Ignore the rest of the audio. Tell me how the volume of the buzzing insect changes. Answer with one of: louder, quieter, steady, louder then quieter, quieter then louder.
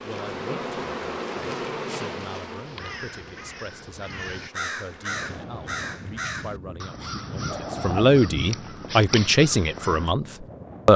quieter.